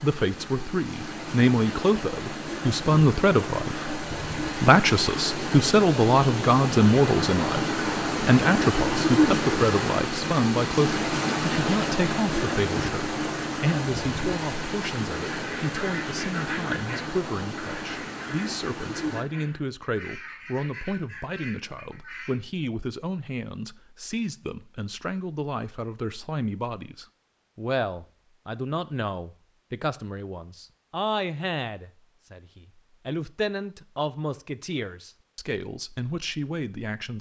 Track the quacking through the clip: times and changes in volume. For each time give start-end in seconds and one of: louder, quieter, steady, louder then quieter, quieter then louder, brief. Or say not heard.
15.1-22.4 quieter.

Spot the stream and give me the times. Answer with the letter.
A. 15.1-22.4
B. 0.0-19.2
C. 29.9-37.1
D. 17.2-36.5
B.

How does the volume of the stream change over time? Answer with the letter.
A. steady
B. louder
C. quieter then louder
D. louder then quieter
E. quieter
D.